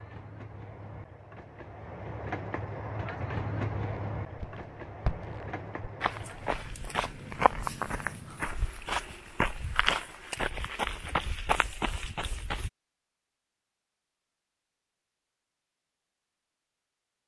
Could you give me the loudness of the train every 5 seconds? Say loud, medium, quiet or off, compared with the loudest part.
loud, medium, off, off.